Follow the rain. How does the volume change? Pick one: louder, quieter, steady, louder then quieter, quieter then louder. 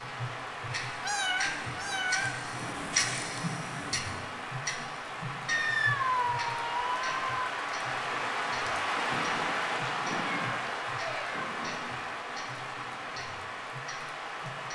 louder then quieter.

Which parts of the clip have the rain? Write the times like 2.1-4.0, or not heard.
0.0-14.7.